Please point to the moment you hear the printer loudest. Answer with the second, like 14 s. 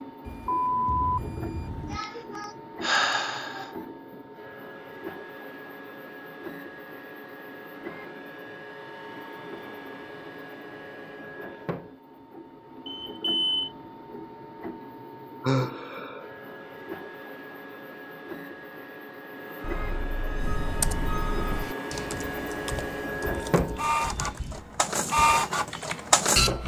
26 s.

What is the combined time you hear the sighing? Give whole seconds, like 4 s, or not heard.
3 s.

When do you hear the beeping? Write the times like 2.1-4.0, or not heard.
0.2-2.0, 12.8-13.7, 19.6-21.6.